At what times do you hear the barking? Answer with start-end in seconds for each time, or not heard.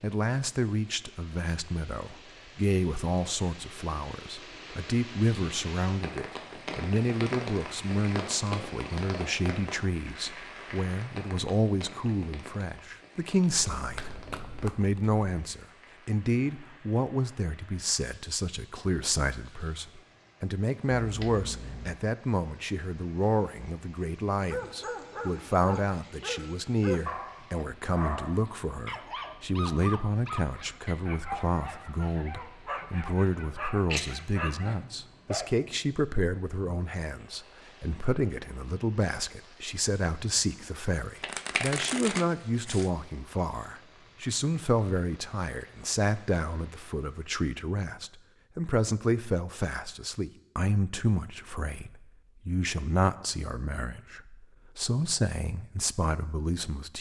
24.4-35.7.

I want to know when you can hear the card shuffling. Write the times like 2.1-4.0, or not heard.
13.5-15.2, 20.9-22.0, 41.2-42.9.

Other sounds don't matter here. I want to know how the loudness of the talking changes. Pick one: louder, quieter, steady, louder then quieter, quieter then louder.
steady.